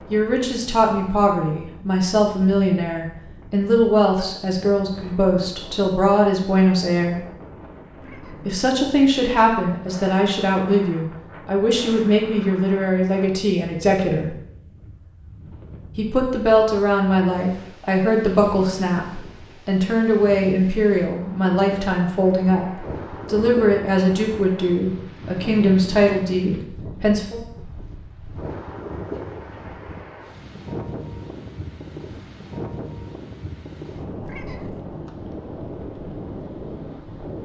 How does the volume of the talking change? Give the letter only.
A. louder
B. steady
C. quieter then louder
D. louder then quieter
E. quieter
B.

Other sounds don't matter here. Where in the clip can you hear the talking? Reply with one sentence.
The talking can be heard from 0.1 to 7.2 s, from 8.4 to 14.3 s and from 15.9 to 27.4 s.